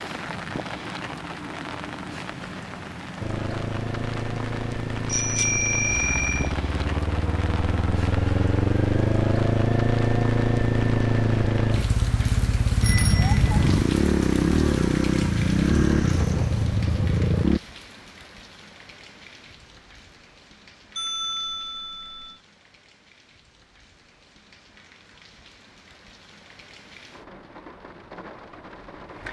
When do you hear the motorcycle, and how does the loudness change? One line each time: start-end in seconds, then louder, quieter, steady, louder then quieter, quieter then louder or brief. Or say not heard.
3.2-17.6 louder.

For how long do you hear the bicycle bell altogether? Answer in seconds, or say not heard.
4 s.